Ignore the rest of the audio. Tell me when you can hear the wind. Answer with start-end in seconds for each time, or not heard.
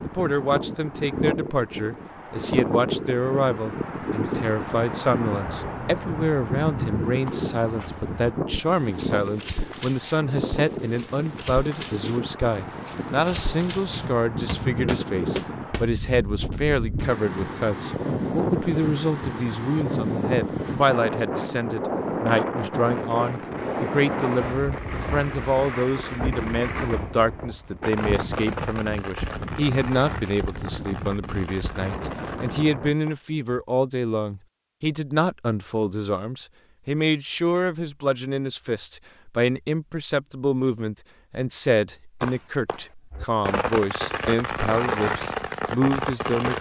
0.0-33.0.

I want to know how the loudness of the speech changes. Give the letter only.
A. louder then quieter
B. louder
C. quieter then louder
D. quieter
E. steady
E.